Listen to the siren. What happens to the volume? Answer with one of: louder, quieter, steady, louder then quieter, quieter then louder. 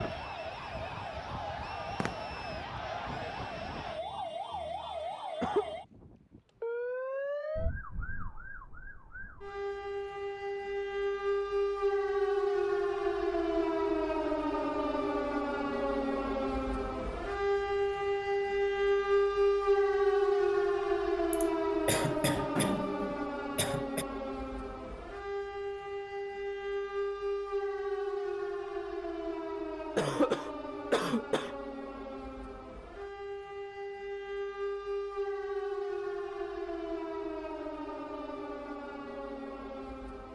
louder then quieter.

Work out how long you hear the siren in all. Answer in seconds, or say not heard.
40 s.